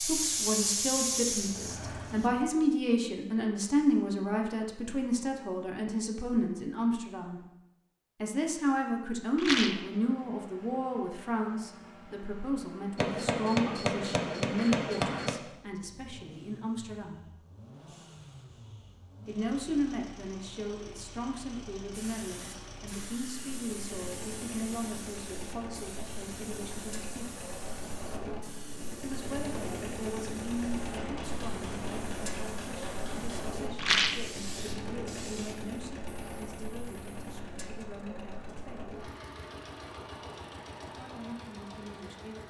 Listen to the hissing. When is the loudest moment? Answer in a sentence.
The volume of the hissing peaks at 1 second.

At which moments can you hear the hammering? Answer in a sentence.
You can hear the hammering from 12.9 to 15.3 s and from 30.8 to 33.6 s.